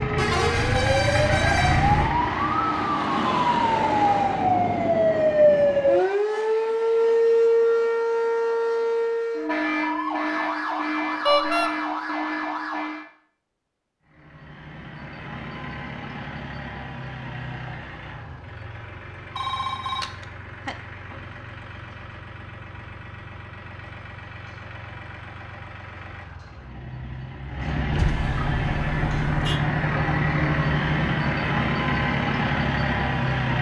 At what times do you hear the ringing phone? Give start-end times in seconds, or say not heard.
19.4-20.8.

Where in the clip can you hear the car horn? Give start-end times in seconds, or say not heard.
0.1-2.1, 11.2-11.7, 27.9-29.6.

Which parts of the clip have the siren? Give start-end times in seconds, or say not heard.
0.0-13.1.